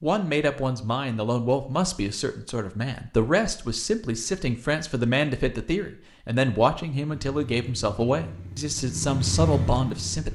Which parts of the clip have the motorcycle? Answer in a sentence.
You can hear the motorcycle from 7.0 to 10.3 s.